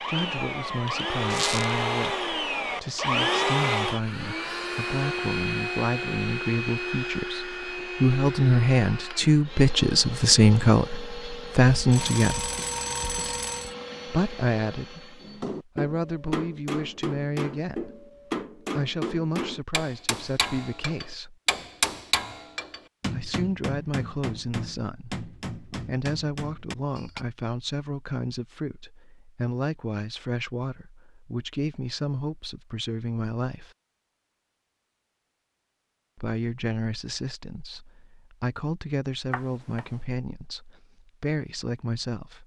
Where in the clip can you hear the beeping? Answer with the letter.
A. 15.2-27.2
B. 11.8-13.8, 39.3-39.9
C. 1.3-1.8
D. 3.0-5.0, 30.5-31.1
B.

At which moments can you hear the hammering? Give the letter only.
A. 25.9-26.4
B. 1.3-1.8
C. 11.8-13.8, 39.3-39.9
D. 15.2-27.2
D.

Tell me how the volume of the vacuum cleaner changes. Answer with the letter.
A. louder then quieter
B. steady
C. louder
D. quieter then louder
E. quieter
E.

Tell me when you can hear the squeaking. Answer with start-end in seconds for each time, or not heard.
1.3-1.8.